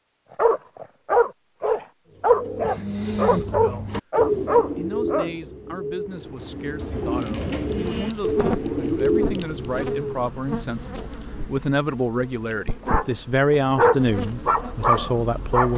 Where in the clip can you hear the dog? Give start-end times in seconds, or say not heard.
0.3-5.3, 12.8-15.7.